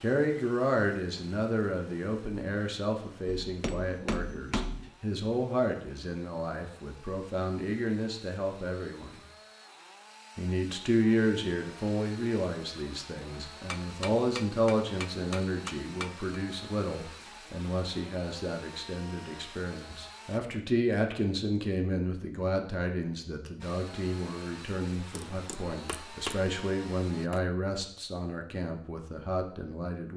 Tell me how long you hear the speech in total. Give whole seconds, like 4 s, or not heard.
29 s.